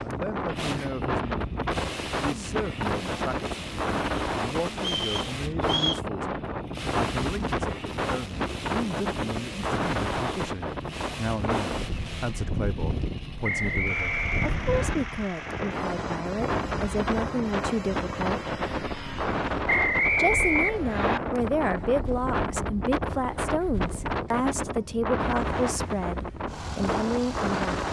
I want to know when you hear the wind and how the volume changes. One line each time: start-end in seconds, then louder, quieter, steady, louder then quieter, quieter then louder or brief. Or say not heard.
0.0-27.8 steady.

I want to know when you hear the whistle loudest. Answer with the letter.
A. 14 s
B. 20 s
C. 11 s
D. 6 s
B.